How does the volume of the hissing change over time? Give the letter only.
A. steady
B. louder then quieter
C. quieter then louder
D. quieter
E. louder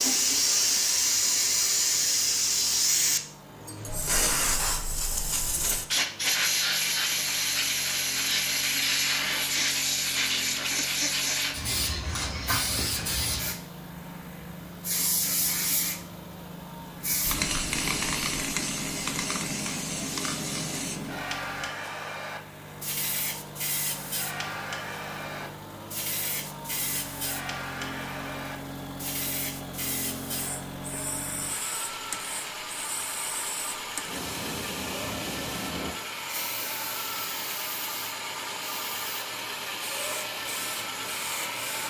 D.